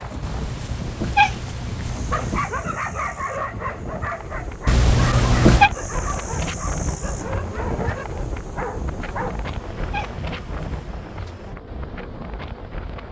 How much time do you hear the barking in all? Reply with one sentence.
You can hear the barking for 7 seconds altogether.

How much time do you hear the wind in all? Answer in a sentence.
The wind can be heard for 13 seconds in total.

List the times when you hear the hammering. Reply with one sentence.
You can't hear the hammering here.